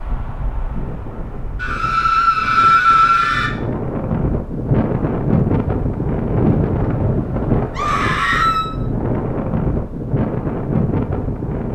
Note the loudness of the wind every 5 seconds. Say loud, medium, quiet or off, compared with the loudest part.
medium, loud, loud.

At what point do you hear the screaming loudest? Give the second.
3 s.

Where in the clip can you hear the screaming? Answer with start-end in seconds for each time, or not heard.
1.6-3.5, 7.7-8.7.